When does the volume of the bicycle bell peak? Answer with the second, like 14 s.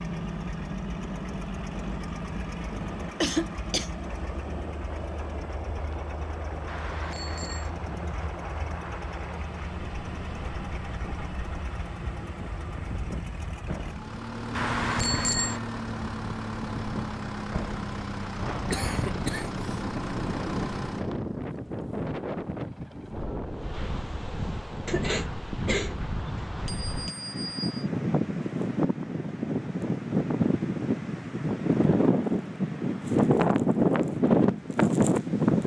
15 s.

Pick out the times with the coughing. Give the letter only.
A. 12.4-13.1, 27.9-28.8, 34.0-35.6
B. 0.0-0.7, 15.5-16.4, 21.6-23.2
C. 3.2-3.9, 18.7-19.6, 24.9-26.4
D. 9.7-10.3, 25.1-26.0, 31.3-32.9
C.